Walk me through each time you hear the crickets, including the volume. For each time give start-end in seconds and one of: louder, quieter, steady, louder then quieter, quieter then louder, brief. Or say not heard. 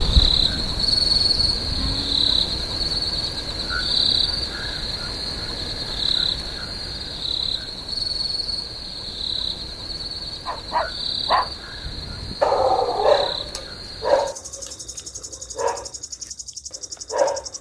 0.0-17.5 quieter.